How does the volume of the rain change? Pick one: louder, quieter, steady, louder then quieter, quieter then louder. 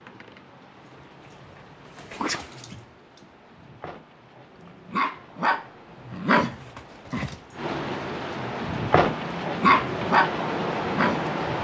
louder.